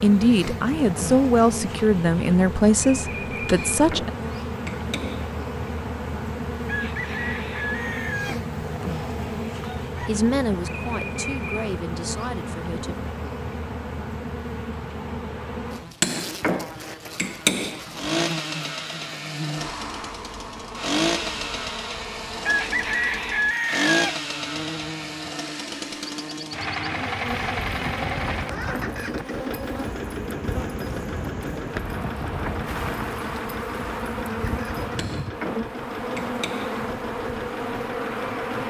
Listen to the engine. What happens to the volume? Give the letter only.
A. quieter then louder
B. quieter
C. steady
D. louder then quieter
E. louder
B.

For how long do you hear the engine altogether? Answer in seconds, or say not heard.
21 s.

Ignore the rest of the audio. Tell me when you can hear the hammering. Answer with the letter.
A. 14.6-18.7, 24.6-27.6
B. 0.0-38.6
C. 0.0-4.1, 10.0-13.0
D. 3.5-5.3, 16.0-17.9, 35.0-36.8
D.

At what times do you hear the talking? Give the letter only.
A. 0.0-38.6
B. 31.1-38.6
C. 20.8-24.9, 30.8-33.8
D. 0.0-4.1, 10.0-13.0
D.